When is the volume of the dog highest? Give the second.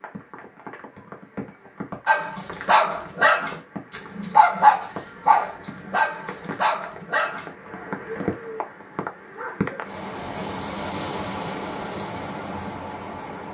5 s.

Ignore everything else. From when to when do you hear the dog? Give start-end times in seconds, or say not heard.
2.0-7.5.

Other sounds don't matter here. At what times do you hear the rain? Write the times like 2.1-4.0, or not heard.
0.0-13.4.